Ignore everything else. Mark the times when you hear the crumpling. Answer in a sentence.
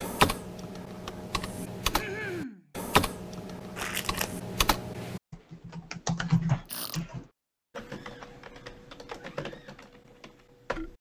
You can hear the crumpling from 3.8 to 4.4 s.